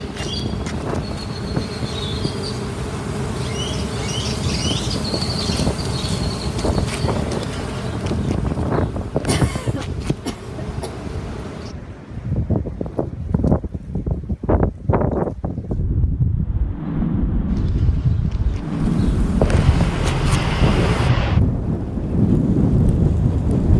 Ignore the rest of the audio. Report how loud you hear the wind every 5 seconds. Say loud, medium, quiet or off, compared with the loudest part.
medium, medium, medium, loud, loud.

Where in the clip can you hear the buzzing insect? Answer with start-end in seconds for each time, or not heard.
0.0-11.8, 17.4-21.1.